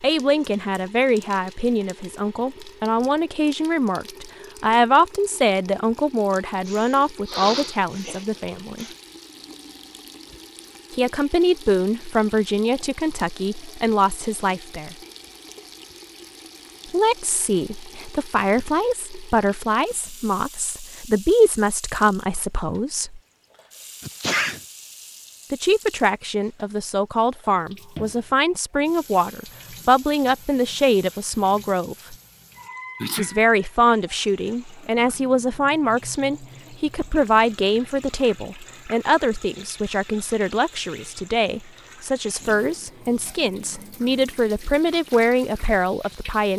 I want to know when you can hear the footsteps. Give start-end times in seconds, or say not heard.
not heard.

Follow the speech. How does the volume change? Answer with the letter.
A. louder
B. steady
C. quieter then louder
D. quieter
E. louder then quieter
B.